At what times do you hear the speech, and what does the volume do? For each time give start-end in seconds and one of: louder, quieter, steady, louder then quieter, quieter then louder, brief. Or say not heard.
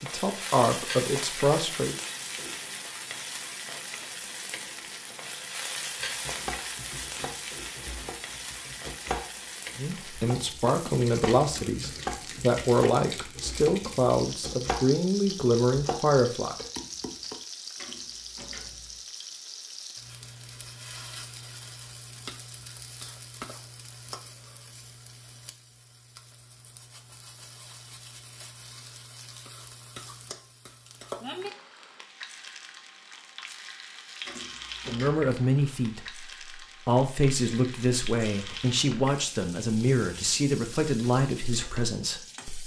0.0-1.9 brief
9.8-16.6 steady
34.9-42.6 steady.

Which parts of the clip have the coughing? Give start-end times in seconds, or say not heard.
not heard.